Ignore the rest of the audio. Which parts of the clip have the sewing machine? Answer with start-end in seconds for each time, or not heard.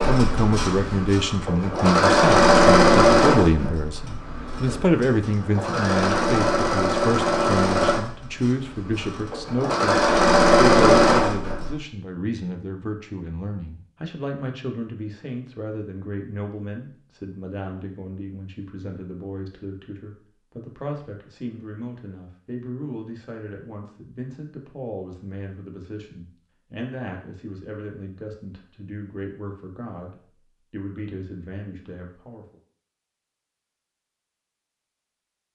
0.0-11.8.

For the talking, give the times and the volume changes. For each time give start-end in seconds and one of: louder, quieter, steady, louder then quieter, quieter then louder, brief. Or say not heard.
0.1-32.5 quieter.